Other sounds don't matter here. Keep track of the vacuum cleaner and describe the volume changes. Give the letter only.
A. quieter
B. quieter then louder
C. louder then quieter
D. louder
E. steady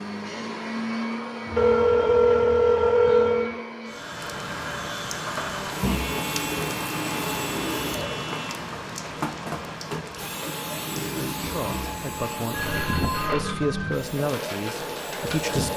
E.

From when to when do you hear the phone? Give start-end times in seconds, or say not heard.
1.4-3.5, 5.8-8.6, 12.5-13.9.